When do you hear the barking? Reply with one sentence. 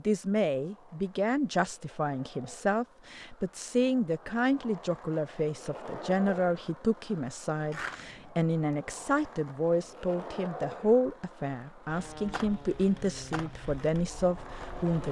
The barking can't be heard in this clip.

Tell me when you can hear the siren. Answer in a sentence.
The siren can't be heard in this clip.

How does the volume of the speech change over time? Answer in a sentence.
The loudness of the speech stays about the same.